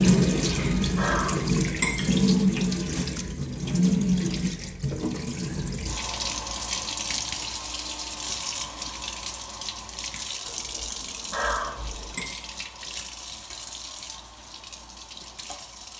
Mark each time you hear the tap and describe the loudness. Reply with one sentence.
The tap can be heard from 0.0 to 15.9 s, getting quieter.